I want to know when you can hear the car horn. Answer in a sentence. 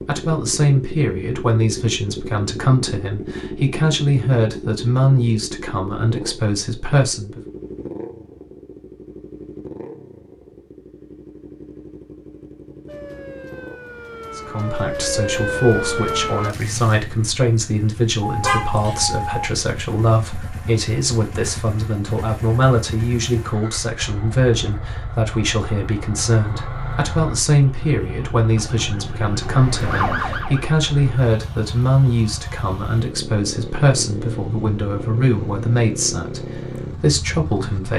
You can hear the car horn from 18.2 to 19.4 s.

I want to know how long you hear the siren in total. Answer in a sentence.
You can hear the siren for 6 seconds altogether.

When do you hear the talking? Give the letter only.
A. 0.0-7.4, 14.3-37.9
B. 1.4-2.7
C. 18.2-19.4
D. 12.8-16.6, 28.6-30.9
A.